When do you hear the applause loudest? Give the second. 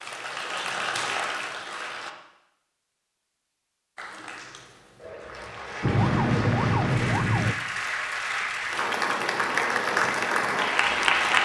11 s.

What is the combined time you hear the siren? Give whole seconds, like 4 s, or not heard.
2 s.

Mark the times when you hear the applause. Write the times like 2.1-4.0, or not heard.
0.0-2.1, 4.0-11.3.